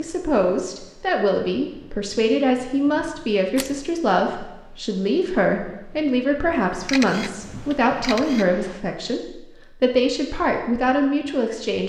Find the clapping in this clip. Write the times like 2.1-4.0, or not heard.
not heard.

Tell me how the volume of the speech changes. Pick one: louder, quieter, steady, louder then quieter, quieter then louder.
steady.